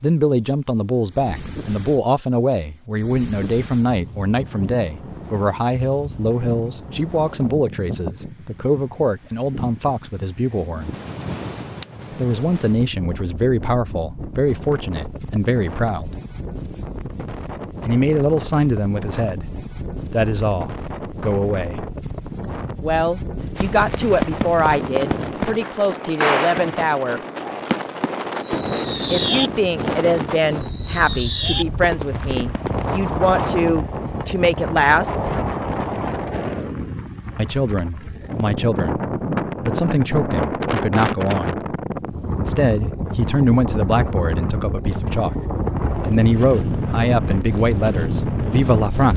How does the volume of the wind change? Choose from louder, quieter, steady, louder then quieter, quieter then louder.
louder.